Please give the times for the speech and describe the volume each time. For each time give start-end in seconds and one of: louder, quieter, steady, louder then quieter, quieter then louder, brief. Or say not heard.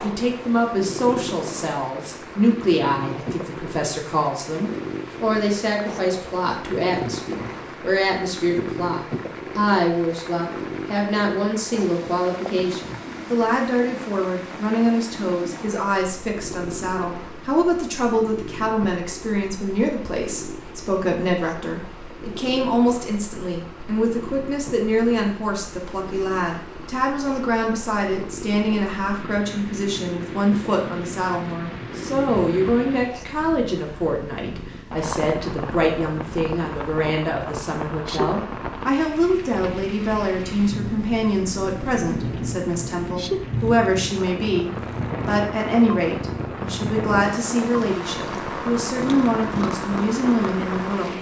0.0-51.1 steady.